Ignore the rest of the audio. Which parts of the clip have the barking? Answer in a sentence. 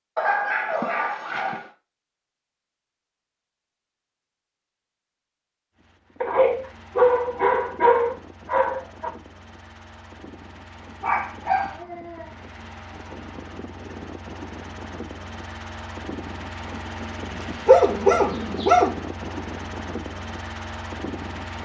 You can hear the barking from 0.1 to 1.6 s, from 6.2 to 9.1 s, from 11.0 to 12.3 s and from 17.4 to 18.9 s.